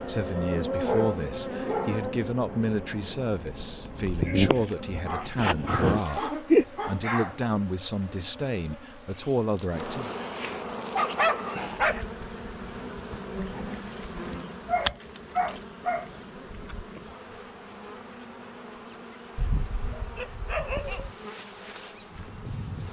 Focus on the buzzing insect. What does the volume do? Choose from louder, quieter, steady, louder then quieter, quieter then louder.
quieter.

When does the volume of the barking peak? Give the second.
11 s.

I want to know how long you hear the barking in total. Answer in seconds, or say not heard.
9 s.